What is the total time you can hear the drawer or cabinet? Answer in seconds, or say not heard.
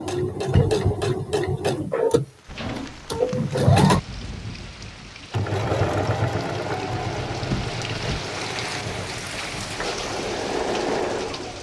2 s.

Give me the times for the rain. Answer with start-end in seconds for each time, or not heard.
2.2-11.5.